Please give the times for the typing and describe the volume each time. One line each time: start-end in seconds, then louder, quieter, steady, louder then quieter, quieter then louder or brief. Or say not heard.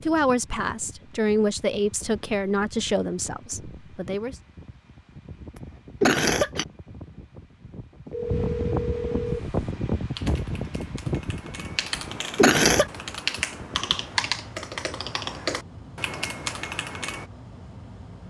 9.4-17.2 louder.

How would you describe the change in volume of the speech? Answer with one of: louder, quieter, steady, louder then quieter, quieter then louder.
louder then quieter.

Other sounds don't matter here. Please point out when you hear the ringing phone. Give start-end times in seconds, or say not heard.
8.1-9.4.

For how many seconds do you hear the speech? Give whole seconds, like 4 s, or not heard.
4 s.